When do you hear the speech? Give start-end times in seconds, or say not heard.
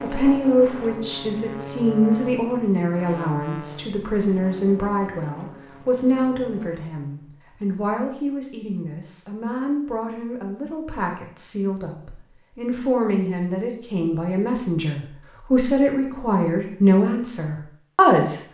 0.0-18.4.